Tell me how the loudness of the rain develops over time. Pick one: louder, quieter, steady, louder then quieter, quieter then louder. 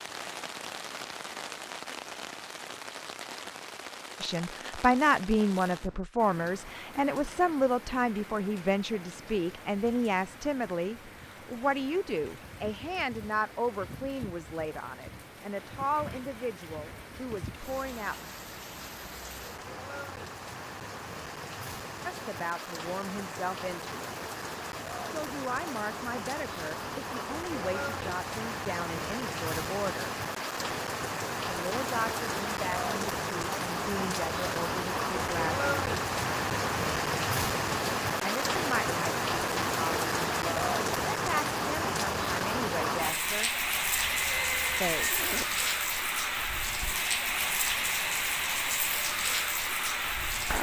louder.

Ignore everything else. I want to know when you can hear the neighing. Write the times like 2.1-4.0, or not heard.
43.9-45.5.